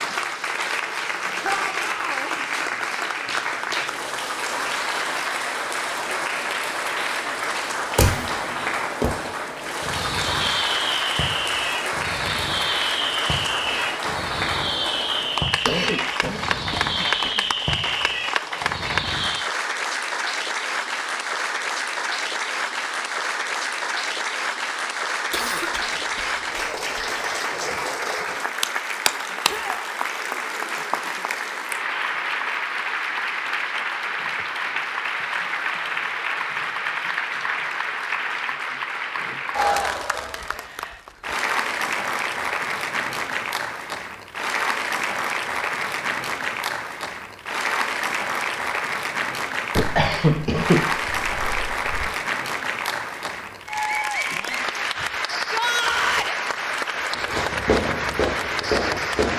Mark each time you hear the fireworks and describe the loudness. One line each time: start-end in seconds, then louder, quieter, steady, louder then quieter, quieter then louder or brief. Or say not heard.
8.0-19.5 steady
57.0-59.3 brief.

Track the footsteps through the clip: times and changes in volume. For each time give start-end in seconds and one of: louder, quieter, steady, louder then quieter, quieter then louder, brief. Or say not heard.
not heard.